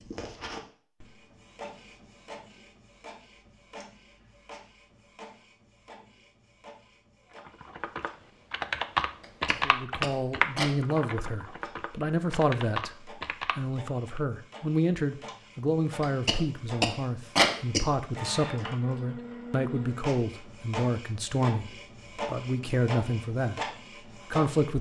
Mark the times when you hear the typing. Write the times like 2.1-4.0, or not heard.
7.3-14.2.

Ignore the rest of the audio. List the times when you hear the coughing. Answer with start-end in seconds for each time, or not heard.
9.2-10.8, 16.0-17.9.